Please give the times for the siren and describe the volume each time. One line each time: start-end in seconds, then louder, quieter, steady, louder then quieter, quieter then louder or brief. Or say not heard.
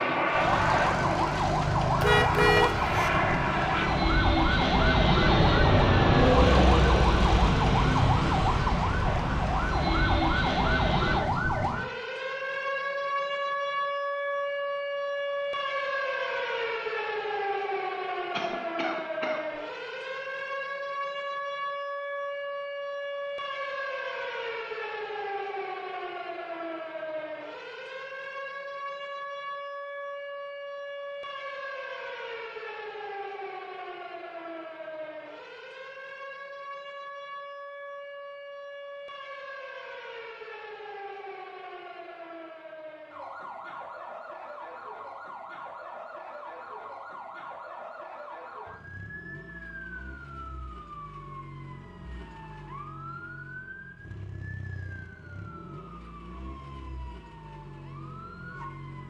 0.0-59.0 quieter.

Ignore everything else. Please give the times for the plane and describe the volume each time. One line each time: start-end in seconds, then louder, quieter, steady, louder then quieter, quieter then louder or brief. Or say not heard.
0.0-11.2 louder then quieter.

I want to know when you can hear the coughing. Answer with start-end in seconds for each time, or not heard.
18.3-19.4.